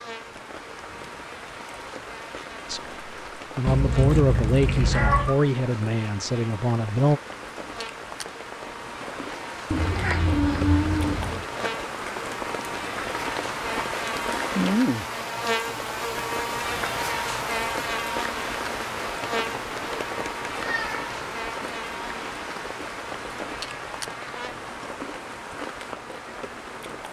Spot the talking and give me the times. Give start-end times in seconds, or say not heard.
2.6-7.2.